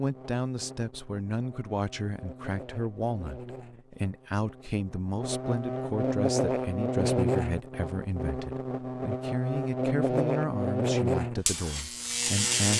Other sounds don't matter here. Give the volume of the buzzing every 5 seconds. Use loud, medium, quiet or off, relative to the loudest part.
quiet, loud, loud.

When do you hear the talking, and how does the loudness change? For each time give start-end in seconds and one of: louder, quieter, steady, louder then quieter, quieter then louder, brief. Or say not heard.
0.0-12.7 steady.